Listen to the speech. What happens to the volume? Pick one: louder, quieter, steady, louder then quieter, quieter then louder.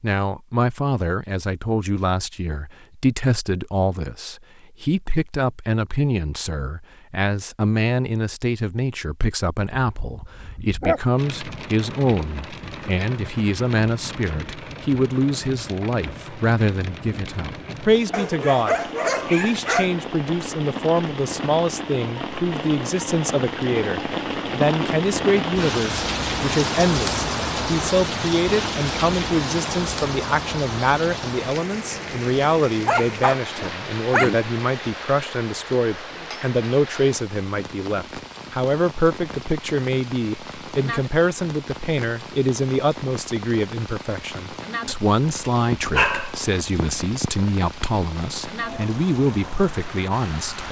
steady.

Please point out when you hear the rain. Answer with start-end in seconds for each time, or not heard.
11.2-50.6.